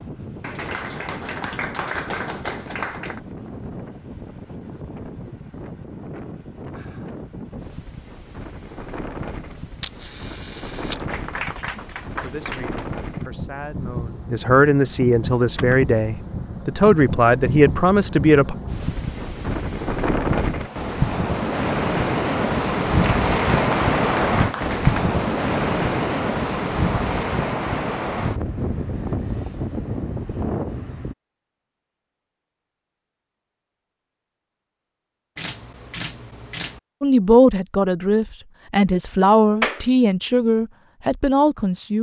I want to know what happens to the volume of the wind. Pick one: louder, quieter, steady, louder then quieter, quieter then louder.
louder.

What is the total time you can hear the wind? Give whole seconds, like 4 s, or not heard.
31 s.